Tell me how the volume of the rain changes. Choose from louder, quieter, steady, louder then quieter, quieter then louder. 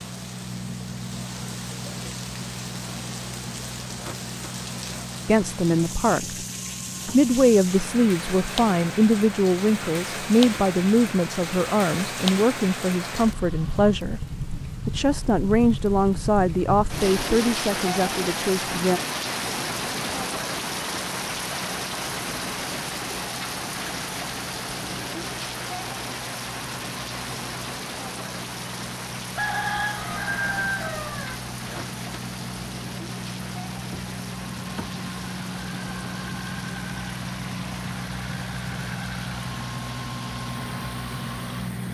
louder then quieter.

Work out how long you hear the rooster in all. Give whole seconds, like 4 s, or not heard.
2 s.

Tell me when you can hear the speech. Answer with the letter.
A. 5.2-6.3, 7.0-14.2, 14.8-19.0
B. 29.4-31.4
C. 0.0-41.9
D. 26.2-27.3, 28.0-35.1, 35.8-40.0
A.